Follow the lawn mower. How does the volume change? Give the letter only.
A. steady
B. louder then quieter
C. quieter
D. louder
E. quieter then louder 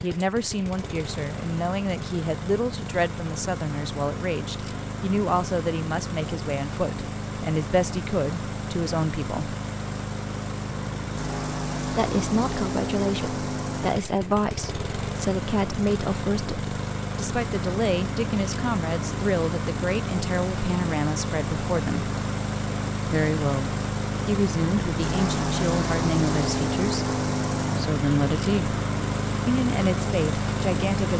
D.